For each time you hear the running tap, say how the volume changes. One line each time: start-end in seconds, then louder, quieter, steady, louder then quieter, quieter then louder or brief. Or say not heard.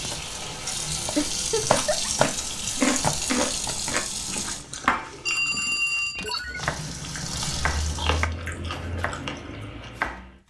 0.0-4.7 steady
6.5-8.3 brief.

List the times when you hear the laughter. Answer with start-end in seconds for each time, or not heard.
1.1-2.1.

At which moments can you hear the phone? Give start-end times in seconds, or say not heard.
5.2-6.7.